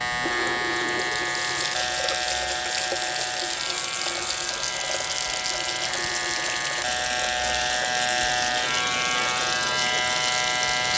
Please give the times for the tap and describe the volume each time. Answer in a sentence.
The tap can be heard from 0.1 to 10.9 s, at a steady volume.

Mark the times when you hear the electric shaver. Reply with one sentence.
The electric shaver can be heard from 0.0 to 10.9 s.